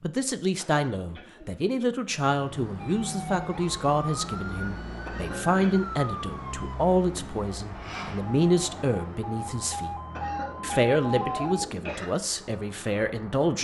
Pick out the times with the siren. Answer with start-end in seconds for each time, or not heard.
2.8-11.7.